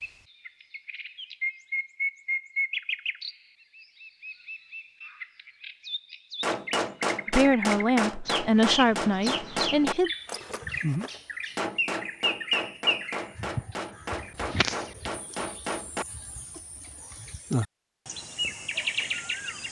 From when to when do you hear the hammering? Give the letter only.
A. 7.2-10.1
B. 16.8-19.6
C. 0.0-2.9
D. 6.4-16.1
D.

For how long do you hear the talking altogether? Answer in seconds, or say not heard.
3 s.